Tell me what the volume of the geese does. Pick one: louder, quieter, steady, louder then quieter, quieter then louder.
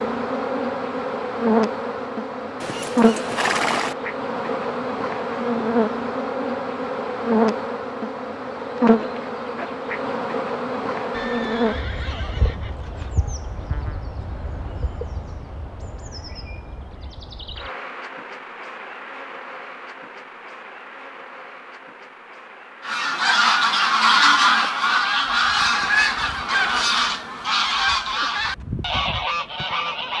quieter.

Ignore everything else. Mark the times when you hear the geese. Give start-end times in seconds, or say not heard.
22.8-30.1.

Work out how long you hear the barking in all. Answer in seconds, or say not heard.
not heard.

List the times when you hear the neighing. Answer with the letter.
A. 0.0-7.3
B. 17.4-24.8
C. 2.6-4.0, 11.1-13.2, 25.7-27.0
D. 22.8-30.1
C.